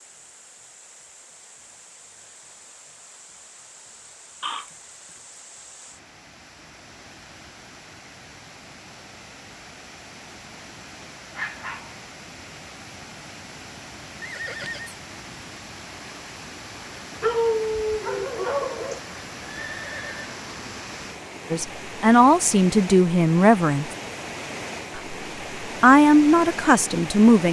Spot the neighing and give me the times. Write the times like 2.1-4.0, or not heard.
4.4-5.2, 14.2-14.9, 19.4-20.4.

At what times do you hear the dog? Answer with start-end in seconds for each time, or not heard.
11.3-12.0, 17.2-19.0.